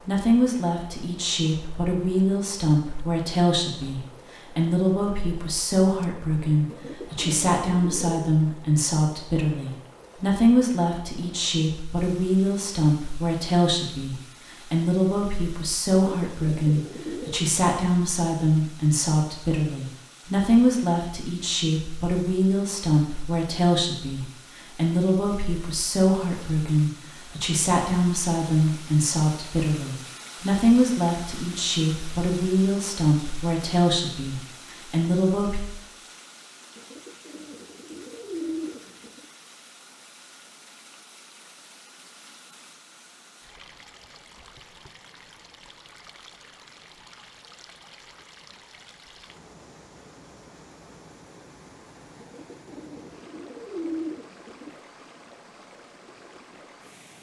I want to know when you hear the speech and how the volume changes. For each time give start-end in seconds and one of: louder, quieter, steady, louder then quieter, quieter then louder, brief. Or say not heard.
0.0-35.6 steady.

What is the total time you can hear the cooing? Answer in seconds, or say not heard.
8 s.